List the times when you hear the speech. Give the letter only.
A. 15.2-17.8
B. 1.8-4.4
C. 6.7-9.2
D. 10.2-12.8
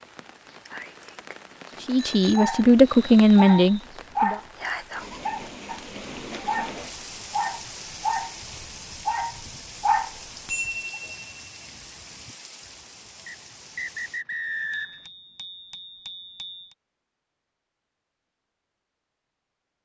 B.